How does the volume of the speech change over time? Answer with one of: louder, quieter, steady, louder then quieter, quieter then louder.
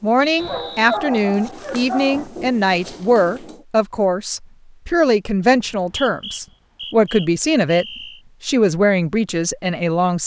steady.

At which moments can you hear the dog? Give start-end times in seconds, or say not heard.
0.3-2.3.